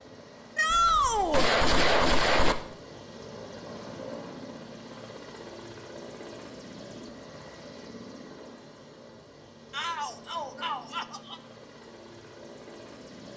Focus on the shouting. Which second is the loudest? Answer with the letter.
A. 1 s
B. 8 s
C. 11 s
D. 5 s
A.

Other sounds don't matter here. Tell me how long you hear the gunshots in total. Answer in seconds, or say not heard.
2 s.